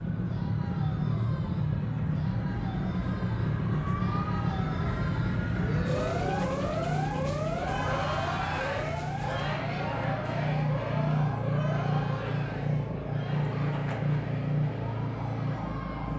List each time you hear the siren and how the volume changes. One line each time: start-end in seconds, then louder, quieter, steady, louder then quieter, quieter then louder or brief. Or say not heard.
0.0-16.1 louder then quieter.